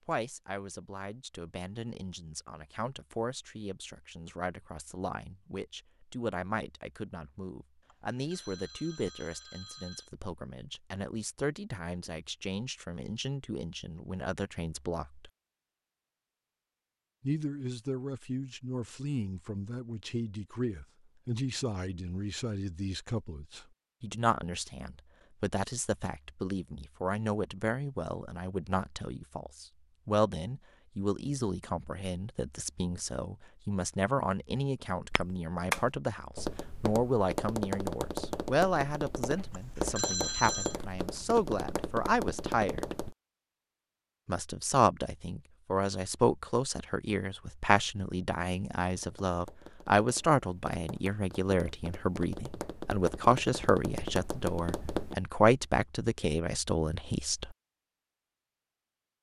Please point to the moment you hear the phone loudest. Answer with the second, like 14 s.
40 s.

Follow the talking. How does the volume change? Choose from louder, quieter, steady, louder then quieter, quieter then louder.
louder.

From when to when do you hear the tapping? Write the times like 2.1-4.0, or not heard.
35.0-43.1, 49.0-55.1.